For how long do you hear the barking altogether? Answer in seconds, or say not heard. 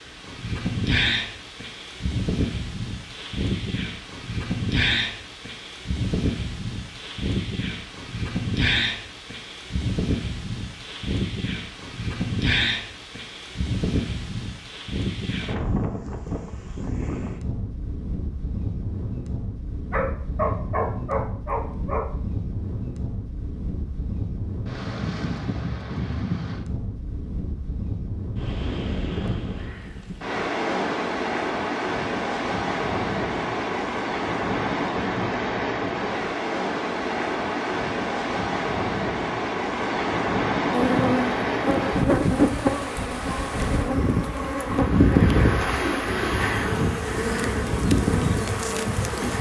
2 s.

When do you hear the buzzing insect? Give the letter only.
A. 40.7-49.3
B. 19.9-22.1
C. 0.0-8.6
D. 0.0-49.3
A.